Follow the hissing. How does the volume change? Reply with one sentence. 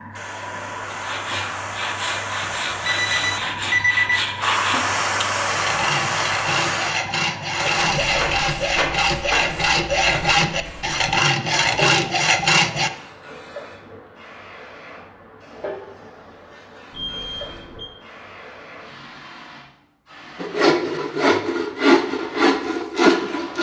The loudness of the hissing goes down.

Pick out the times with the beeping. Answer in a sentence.
You can hear the beeping from 2.4 to 4.2 s and from 16.9 to 17.9 s.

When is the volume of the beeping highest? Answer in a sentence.
The volume of the beeping peaks at 4 seconds.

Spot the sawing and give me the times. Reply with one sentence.
You can hear the sawing from 0.9 to 12.9 s and from 20.4 to 23.5 s.